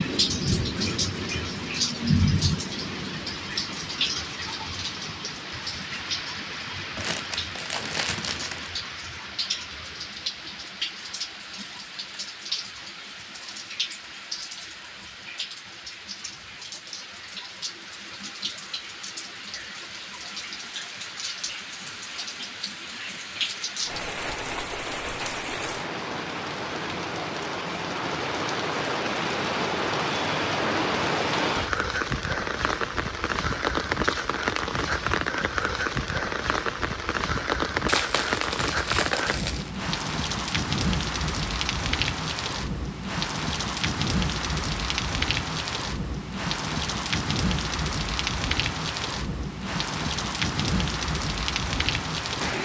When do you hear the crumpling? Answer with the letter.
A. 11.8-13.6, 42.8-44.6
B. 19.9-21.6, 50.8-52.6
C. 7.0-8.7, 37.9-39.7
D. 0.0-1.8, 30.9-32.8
C.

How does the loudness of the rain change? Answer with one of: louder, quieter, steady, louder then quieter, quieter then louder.
quieter then louder.